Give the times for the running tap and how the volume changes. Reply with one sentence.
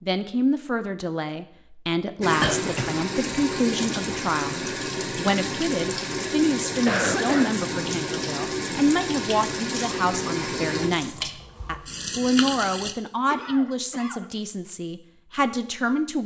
You can hear the running tap from 2.2 to 12.9 s, at a steady volume.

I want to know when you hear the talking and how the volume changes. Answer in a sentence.
You can hear the talking from 0.0 to 16.2 s, at a steady volume.